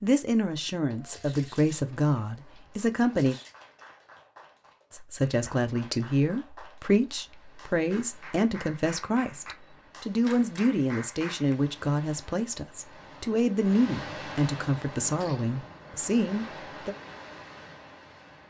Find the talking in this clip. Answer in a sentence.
You can hear the talking from 0.0 to 3.4 s and from 4.9 to 16.9 s.